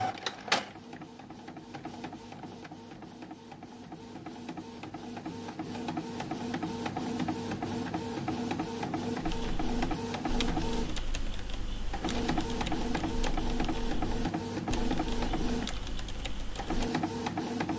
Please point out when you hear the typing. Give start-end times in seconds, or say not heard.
9.2-16.9.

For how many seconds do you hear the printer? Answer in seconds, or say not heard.
18 s.